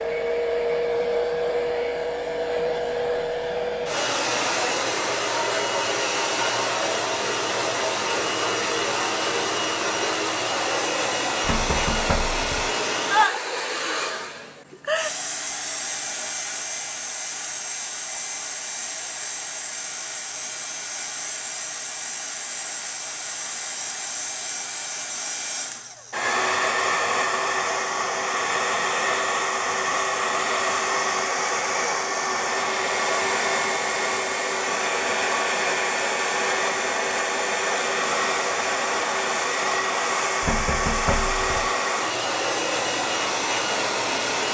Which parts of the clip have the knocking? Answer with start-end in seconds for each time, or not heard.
11.4-12.7, 40.4-41.7.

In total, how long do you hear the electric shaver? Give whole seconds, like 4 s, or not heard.
not heard.